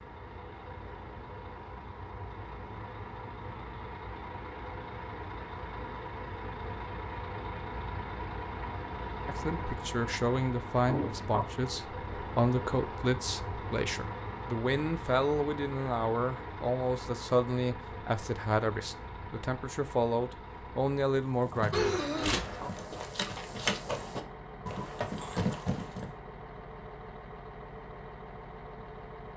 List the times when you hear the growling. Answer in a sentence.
You can't hear the growling here.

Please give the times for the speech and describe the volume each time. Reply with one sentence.
You can hear the speech from 9.2 to 22.4 s, at a steady volume.